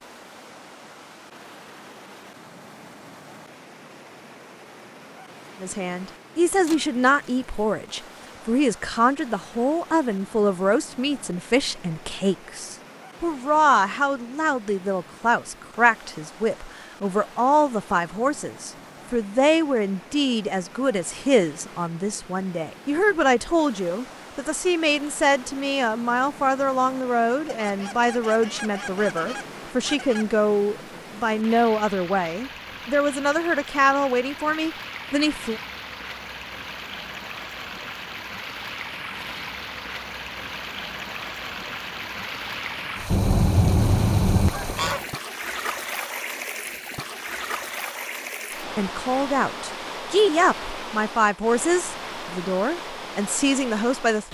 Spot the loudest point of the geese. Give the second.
44 s.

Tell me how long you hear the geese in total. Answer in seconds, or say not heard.
6 s.